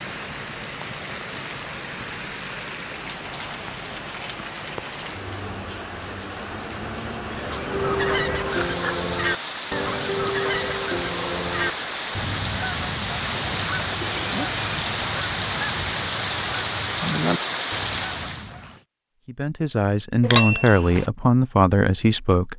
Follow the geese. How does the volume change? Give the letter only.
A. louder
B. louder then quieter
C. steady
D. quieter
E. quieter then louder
D.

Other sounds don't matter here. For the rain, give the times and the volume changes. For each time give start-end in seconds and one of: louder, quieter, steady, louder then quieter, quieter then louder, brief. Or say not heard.
0.0-18.6 louder.